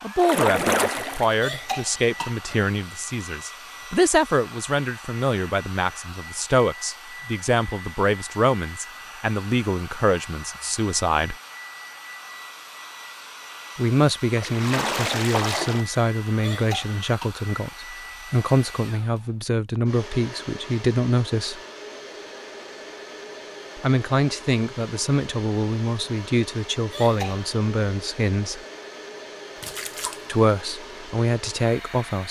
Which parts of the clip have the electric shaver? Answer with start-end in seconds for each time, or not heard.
not heard.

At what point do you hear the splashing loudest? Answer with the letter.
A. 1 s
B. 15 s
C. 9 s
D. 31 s
A.